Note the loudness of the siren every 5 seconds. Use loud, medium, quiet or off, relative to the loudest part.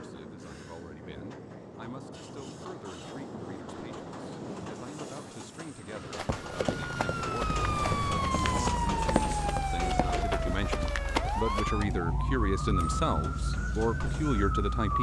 off, loud, loud.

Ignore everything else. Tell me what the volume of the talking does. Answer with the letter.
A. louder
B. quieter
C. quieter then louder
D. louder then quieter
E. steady
A.